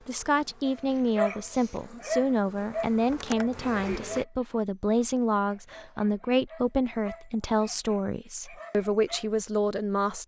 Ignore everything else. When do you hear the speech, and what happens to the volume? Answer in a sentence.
The speech can be heard from 0.1 to 10.2 s, at a steady volume.